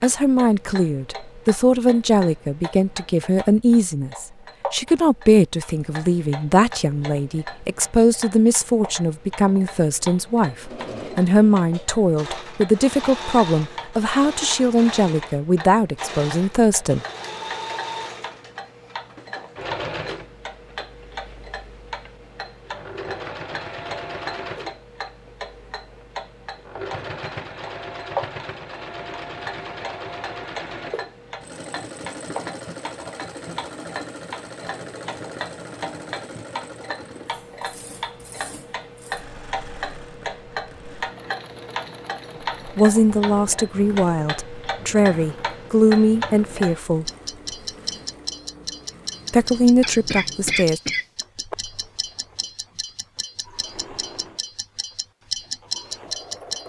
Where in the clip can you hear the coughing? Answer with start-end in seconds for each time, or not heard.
49.8-51.0.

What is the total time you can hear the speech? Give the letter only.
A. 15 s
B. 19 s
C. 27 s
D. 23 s
D.